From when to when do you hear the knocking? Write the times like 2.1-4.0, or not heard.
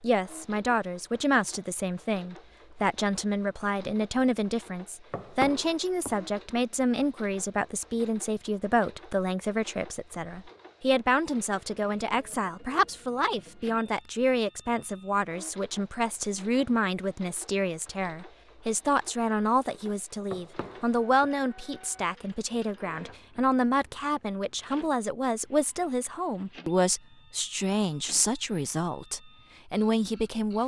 5.1-6.2, 20.3-21.3.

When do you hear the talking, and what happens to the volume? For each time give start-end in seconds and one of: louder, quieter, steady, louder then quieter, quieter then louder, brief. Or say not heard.
0.0-30.6 steady.